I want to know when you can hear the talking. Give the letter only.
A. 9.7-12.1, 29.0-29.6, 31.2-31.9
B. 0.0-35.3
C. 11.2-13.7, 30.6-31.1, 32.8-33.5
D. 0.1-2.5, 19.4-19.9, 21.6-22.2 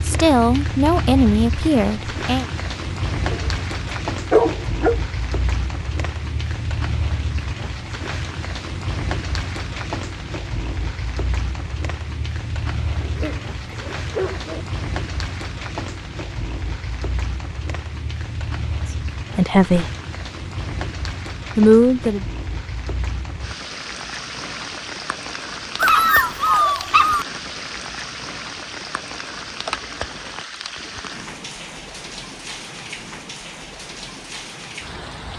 D.